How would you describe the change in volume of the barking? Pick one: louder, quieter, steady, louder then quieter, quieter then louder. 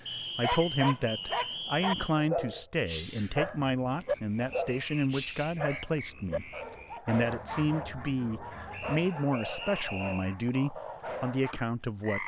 quieter.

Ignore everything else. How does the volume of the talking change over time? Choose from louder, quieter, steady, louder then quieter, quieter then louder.
steady.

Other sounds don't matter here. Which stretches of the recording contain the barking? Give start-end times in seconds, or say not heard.
0.4-11.6.